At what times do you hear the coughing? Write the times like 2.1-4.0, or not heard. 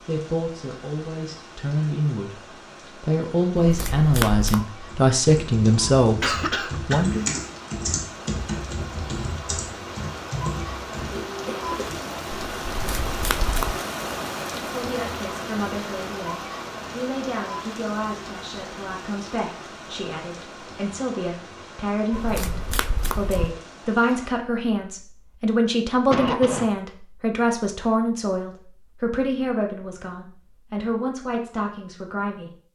6.2-7.5, 11.1-11.9, 26.1-26.7.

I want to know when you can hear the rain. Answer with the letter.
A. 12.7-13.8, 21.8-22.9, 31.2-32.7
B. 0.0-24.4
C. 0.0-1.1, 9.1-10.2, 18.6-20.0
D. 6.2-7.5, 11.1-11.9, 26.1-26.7
B.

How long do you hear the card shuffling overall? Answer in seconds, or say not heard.
4 s.